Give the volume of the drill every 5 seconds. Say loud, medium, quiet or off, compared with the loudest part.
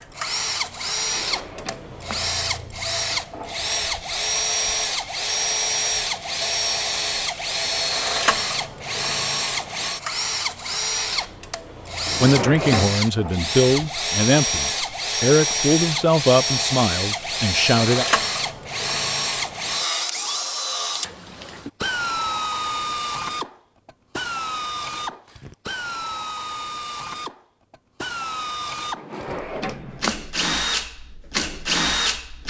loud, loud, loud, loud, loud, medium, loud.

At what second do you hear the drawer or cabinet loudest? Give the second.
13 s.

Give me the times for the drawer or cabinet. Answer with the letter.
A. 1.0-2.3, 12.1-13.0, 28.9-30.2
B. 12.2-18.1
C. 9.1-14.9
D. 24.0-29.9
A.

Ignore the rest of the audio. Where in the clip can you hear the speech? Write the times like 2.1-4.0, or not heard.
12.2-18.1.